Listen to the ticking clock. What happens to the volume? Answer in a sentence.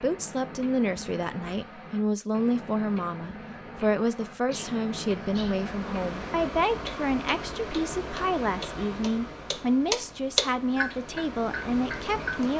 The loudness of the ticking clock goes up.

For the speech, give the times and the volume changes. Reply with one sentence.
The speech can be heard from 0.0 to 12.5 s, at a steady volume.